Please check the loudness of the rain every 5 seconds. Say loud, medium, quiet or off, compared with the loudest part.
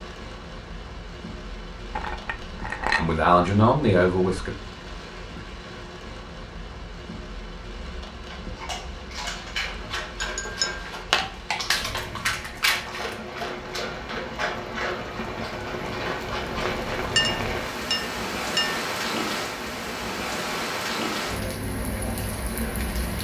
medium, medium, medium, loud, loud.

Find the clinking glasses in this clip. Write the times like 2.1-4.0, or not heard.
1.9-3.1, 10.2-10.8, 17.1-18.8.